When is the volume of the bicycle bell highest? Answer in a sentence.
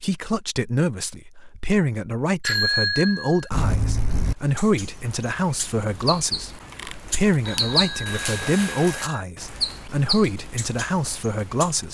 The volume of the bicycle bell peaks at 3 seconds.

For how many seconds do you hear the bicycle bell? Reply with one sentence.
The bicycle bell can be heard for 4 seconds in total.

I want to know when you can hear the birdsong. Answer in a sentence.
The birdsong can be heard from 4.2 to 11.8 s.